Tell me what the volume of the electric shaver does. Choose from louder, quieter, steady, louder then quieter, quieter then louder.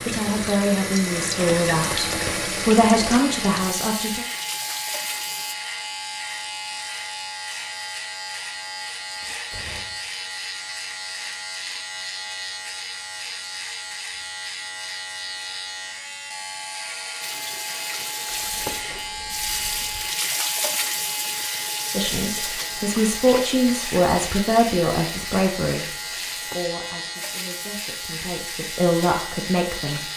steady.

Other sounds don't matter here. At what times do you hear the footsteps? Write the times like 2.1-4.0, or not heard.
not heard.